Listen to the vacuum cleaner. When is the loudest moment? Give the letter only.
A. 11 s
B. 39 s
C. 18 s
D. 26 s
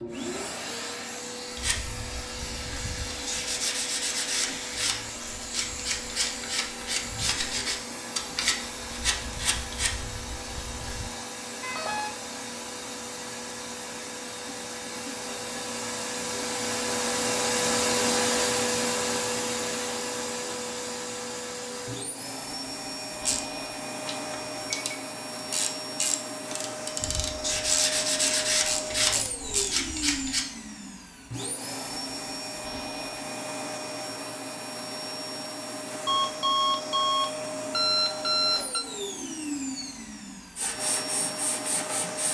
C.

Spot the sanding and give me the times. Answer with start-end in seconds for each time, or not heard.
1.6-11.1, 27.0-30.4, 40.5-42.2.